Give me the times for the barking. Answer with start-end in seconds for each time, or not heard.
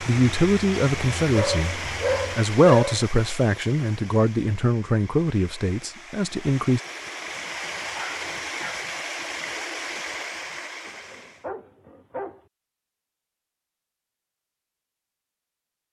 1.3-3.0, 7.8-8.8, 10.8-12.4.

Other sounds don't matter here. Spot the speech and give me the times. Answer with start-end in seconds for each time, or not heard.
0.1-6.8.